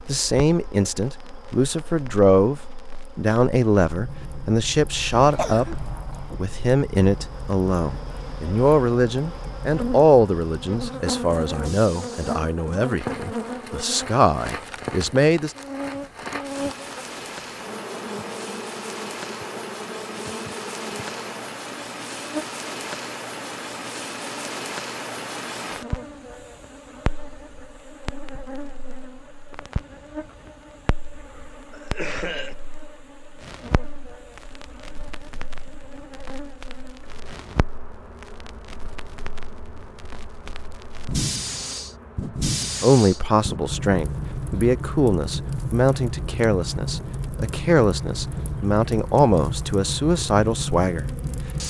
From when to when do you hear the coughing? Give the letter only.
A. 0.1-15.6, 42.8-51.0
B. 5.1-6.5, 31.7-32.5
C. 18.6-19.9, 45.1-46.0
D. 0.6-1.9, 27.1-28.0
B.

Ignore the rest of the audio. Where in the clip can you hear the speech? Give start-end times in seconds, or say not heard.
0.1-15.6, 42.8-51.0.